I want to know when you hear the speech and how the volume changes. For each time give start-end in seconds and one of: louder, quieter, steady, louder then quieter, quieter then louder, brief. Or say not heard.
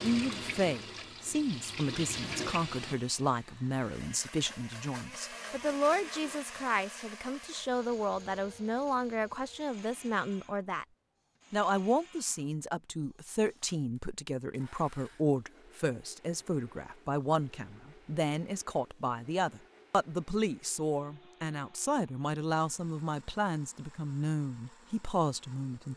0.0-10.8 steady
11.5-25.9 steady.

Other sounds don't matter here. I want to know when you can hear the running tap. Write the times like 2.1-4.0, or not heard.
0.0-3.0.